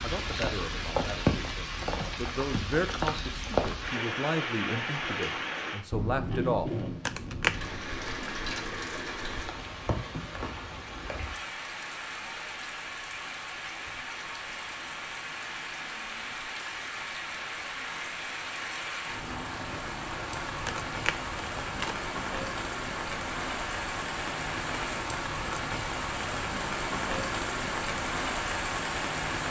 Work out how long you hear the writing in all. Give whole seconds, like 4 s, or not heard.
not heard.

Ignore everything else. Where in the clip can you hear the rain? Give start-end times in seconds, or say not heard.
0.0-29.4.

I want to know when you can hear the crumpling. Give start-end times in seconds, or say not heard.
7.0-7.7, 20.6-22.0.